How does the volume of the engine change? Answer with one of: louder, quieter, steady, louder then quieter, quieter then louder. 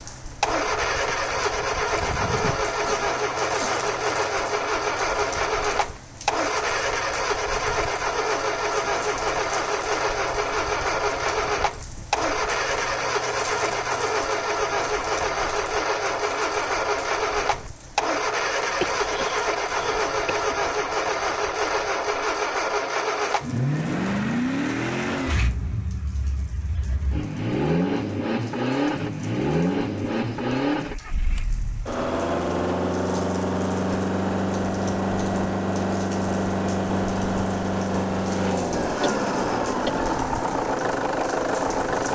steady.